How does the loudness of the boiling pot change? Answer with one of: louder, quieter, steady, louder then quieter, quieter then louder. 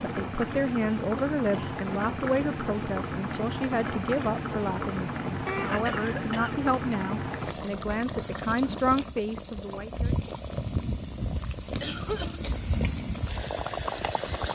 steady.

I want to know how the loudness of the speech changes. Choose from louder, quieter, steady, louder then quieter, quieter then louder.
steady.